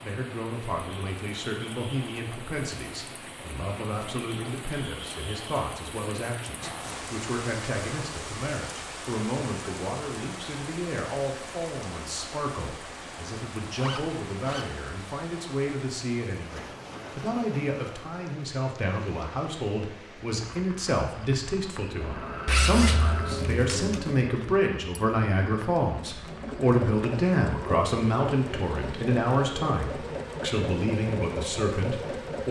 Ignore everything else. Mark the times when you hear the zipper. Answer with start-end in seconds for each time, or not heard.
6.5-7.1, 13.8-14.7, 22.4-24.0.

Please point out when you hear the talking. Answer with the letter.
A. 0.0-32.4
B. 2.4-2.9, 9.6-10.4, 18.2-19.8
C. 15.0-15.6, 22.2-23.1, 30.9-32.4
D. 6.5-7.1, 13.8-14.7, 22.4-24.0
A.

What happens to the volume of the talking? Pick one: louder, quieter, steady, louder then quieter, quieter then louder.
louder.